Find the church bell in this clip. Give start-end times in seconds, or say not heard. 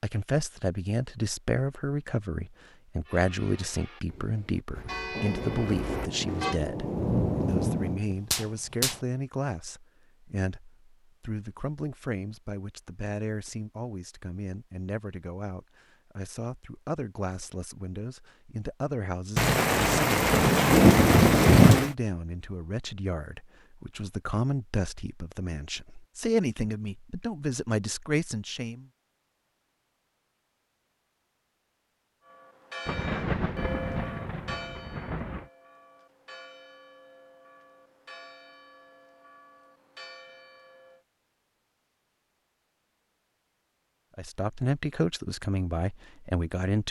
3.0-6.6, 32.2-41.0.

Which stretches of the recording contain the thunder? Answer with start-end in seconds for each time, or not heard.
5.2-8.9, 19.4-21.9, 32.9-35.5.